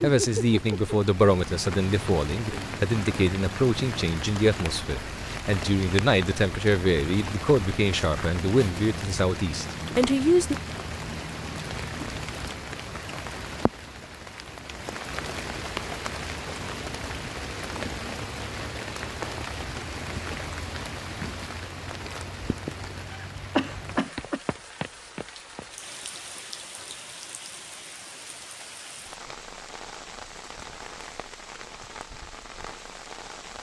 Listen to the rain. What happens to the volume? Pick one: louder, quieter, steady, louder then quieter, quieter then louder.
quieter.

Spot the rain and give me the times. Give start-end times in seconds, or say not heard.
0.0-33.5.